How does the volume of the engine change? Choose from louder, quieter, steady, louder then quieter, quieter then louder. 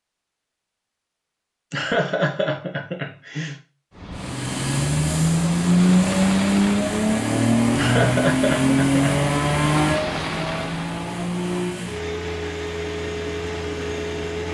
quieter.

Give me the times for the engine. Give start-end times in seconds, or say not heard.
4.2-14.5.